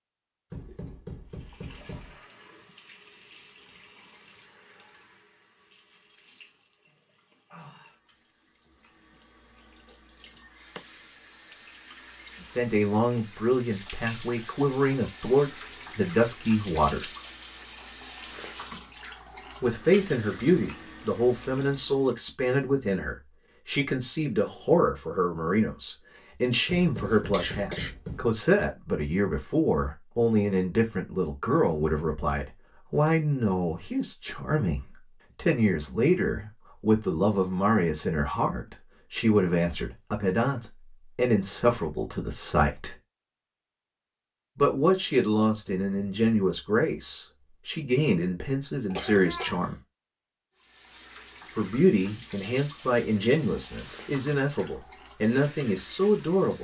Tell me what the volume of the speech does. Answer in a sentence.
The volume of the speech stays about the same.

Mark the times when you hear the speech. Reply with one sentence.
The speech can be heard from 12.4 to 17.1 s, from 19.6 to 43.0 s, from 44.5 to 49.8 s and from 51.5 to 56.5 s.